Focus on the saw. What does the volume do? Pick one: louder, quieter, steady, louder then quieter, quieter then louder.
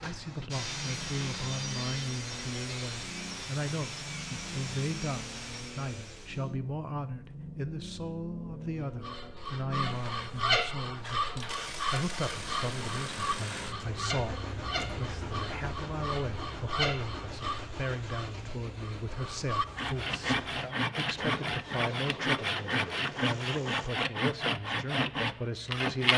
louder.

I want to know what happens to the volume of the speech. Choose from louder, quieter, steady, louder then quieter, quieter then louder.
steady.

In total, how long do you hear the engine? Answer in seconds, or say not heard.
24 s.